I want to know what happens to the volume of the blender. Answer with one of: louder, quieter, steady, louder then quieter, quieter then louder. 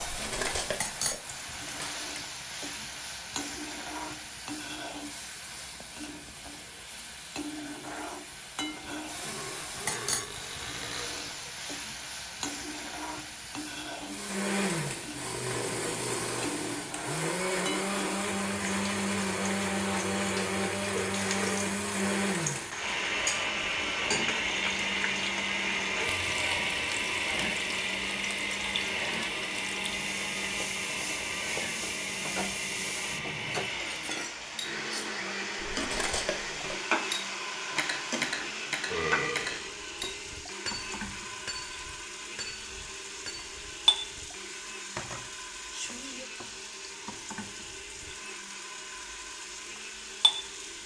quieter.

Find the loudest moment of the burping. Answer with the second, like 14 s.
39 s.